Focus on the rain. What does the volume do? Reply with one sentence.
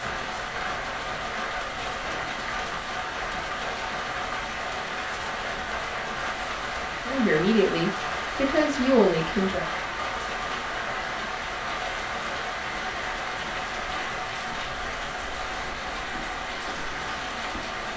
The loudness of the rain stays about the same.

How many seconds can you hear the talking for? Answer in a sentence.
The talking can be heard for 3 seconds in total.